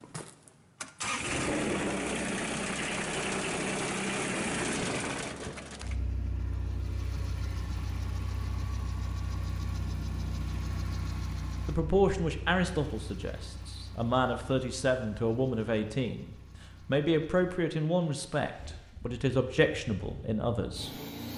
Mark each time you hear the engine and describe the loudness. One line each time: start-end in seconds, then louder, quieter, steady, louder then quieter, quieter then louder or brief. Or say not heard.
0.0-21.3 quieter.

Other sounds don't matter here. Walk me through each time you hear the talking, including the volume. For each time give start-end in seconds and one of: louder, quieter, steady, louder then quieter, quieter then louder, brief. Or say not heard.
11.7-20.9 steady.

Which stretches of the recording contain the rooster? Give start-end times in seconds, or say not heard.
not heard.